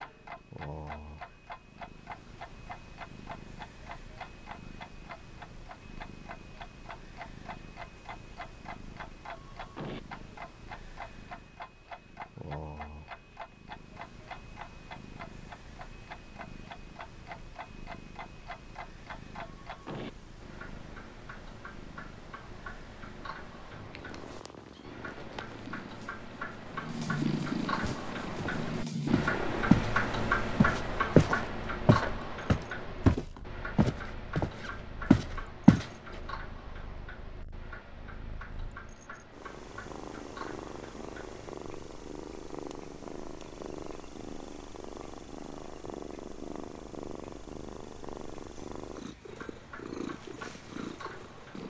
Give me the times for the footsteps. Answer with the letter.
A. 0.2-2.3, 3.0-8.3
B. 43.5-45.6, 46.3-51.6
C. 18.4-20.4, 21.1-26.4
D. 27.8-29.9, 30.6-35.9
D.